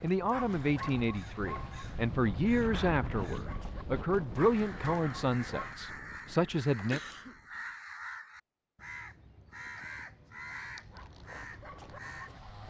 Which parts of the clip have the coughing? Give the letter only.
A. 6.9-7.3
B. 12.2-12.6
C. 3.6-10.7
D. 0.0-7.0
A.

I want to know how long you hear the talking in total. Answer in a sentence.
You can hear the talking for 7 seconds altogether.